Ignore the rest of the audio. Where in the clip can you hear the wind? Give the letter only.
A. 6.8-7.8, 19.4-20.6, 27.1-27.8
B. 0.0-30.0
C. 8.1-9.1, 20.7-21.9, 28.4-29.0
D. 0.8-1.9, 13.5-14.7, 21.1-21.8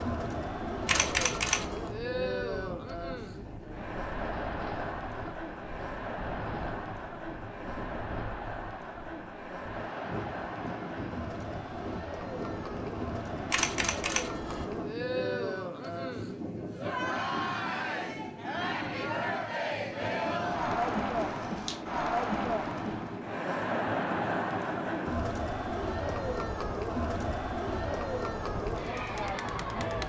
B.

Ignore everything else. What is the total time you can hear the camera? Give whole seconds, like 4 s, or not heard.
3 s.